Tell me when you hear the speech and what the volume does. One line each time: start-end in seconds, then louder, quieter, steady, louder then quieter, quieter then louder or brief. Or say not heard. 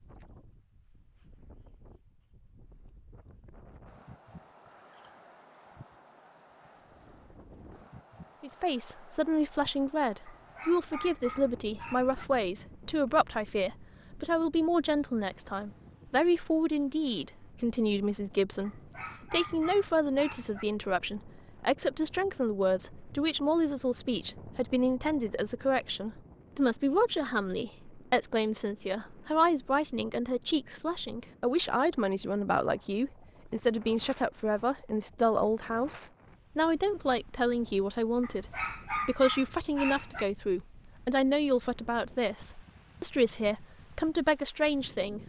8.4-45.2 steady.